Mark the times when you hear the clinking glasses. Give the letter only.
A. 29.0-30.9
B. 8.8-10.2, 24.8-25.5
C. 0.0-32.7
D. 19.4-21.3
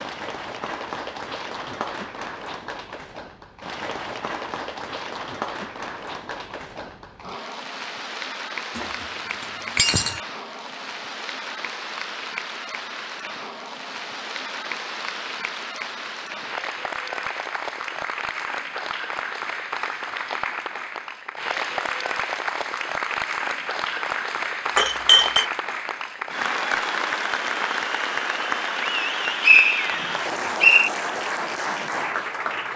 B.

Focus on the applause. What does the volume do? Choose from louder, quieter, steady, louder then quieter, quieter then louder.
louder.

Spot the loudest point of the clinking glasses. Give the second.
25 s.